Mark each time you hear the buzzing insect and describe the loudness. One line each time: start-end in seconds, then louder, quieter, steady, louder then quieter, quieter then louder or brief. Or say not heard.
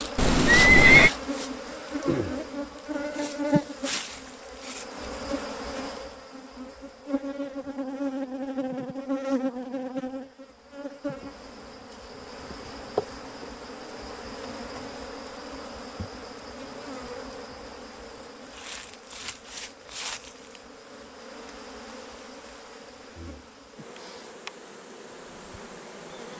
0.0-26.3 quieter.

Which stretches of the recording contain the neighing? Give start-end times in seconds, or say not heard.
0.1-1.1.